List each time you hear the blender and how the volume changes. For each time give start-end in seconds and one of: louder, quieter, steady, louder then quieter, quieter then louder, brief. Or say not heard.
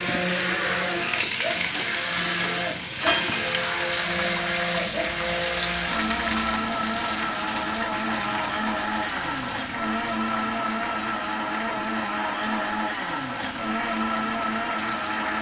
0.0-15.3 steady.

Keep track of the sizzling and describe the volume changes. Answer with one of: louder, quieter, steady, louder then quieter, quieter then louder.
quieter.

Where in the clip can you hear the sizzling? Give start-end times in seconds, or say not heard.
0.0-15.3.